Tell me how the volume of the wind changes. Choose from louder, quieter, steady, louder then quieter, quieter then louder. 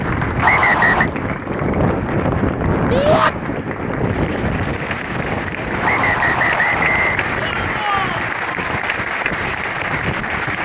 quieter.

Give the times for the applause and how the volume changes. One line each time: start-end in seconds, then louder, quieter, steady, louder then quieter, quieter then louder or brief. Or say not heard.
0.0-10.6 louder.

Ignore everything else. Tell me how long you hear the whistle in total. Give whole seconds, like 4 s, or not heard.
2 s.